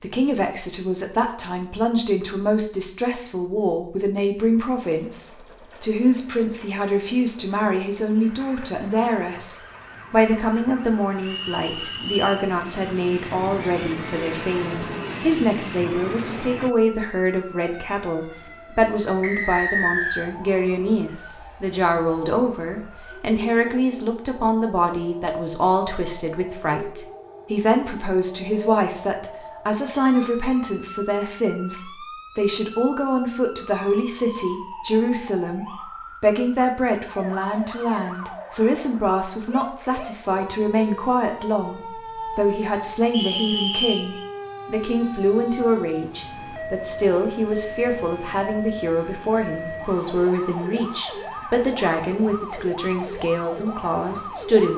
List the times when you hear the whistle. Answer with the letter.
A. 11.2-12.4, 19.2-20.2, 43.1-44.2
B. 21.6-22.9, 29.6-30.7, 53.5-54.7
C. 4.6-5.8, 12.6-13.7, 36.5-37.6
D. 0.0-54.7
A.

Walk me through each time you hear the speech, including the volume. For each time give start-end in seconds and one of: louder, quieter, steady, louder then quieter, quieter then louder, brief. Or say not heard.
0.0-54.7 steady.